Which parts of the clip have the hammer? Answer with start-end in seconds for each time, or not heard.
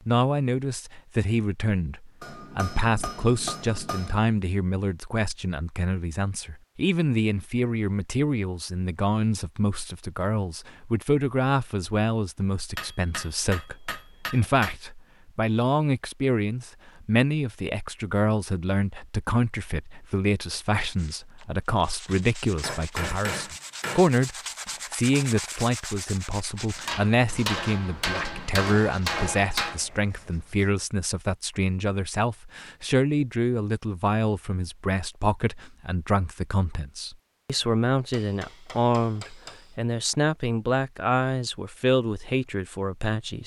2.2-4.2, 12.8-14.8, 22.1-24.1, 26.9-29.8, 38.1-39.8.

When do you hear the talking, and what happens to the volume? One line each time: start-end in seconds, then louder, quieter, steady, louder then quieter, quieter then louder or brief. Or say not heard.
0.1-43.4 steady.